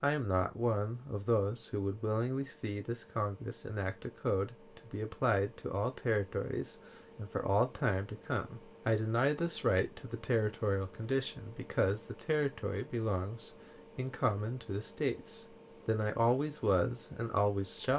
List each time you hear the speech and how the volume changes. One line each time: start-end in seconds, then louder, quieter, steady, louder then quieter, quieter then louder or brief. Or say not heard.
0.0-17.9 steady.